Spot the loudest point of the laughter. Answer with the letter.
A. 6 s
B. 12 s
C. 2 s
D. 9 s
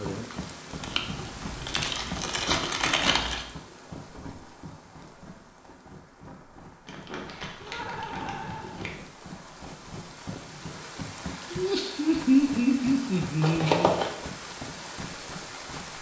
B.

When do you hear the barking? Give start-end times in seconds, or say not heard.
not heard.